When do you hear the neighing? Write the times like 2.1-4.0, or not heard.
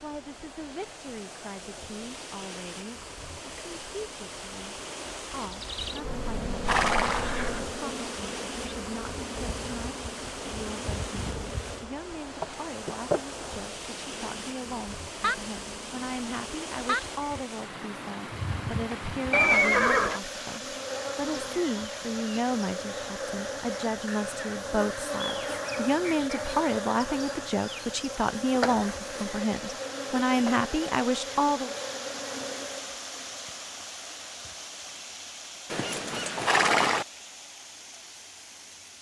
6.0-7.8, 19.3-20.2, 35.7-37.0.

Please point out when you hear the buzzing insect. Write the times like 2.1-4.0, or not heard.
5.4-33.4.